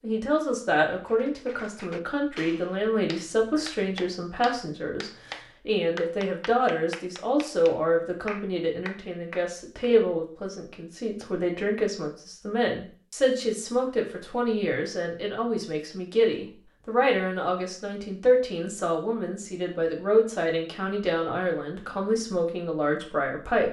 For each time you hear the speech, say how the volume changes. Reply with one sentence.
The speech can be heard from 0.0 to 23.6 s, at a steady volume.